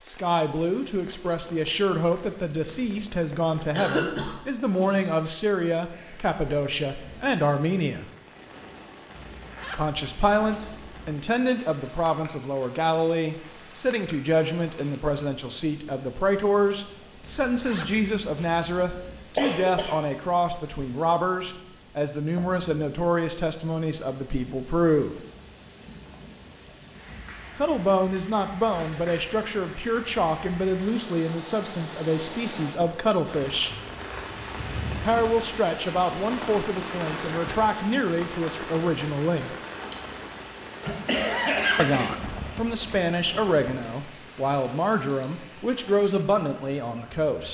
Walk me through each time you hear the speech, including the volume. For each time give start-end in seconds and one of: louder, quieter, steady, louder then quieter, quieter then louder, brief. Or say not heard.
0.1-8.1 steady
9.8-25.1 steady
27.6-33.8 steady
35.0-39.5 steady
41.8-47.4 steady.